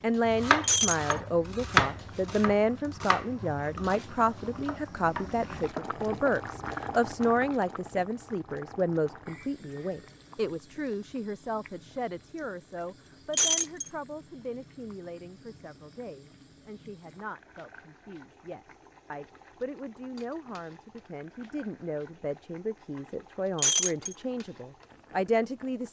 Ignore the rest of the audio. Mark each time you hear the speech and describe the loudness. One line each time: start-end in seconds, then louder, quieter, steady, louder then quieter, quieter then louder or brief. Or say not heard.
0.0-25.8 quieter then louder.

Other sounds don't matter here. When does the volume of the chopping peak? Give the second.
2 s.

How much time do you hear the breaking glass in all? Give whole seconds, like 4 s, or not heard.
2 s.